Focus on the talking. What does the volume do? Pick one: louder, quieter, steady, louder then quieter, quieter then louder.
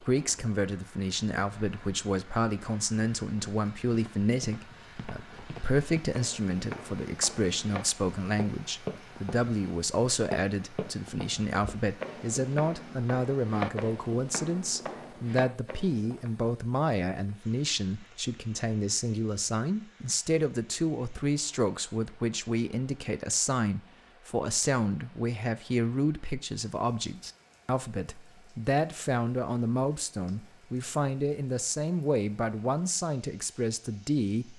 steady.